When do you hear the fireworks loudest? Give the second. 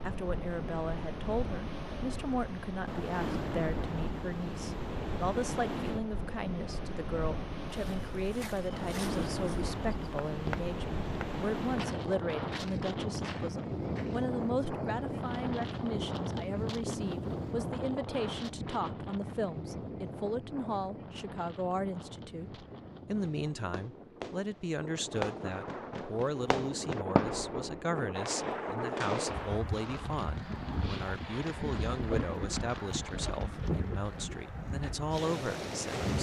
27 s.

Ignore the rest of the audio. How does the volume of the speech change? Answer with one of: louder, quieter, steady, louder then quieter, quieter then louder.
steady.